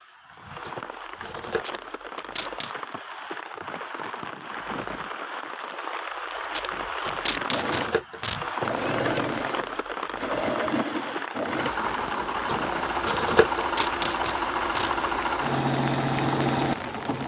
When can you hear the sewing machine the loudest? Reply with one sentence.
The volume of the sewing machine peaks at 16 seconds.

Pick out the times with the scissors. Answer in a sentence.
The scissors can be heard from 0.7 to 1.8 s, from 7.0 to 8.2 s and from 12.4 to 13.7 s.